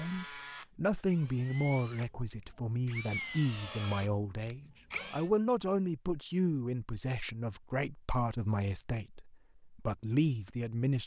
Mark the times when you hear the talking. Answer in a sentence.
The talking can be heard from 0.0 to 11.0 s.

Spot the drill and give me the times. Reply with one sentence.
You can hear the drill from 0.0 to 5.3 s.